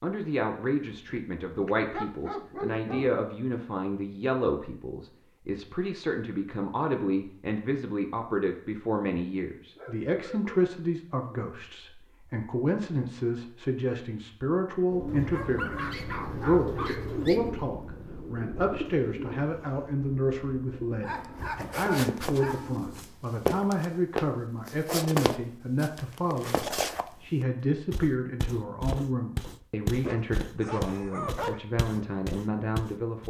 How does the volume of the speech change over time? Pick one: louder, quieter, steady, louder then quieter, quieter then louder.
steady.